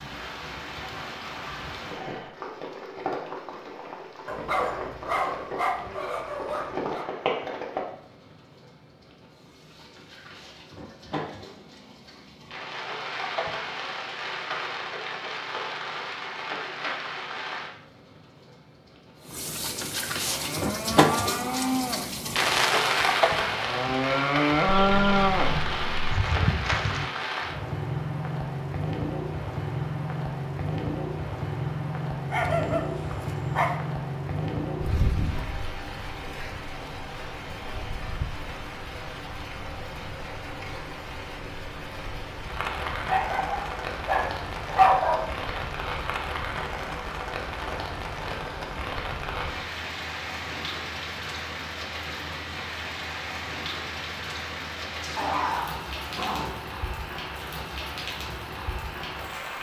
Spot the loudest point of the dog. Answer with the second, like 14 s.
45 s.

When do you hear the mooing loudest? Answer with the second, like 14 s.
25 s.